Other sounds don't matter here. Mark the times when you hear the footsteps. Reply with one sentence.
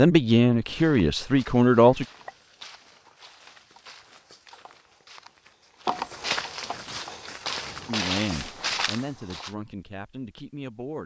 The footsteps can be heard from 0.7 to 9.5 s.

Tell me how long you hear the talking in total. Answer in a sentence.
The talking can be heard for 5 seconds in total.